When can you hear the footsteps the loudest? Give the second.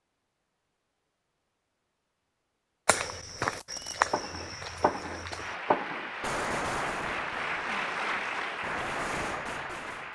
4 s.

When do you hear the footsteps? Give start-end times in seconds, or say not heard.
2.9-5.5.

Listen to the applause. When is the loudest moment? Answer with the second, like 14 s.
8 s.